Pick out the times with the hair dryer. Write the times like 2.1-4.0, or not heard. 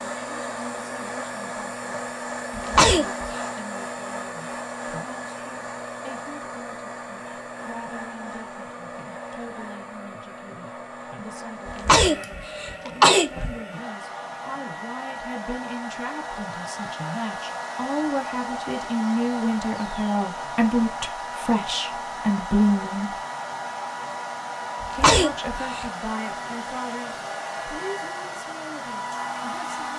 0.0-29.9.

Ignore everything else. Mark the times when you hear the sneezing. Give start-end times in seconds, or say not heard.
2.5-3.3, 11.7-13.6, 24.8-25.9.